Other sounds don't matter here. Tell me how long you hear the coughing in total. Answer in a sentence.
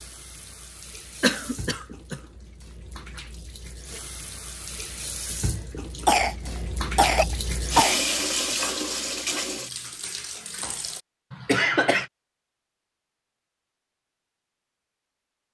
You can hear the coughing for 4 seconds altogether.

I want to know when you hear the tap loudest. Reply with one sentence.
The loudest moment of the tap is at 8 seconds.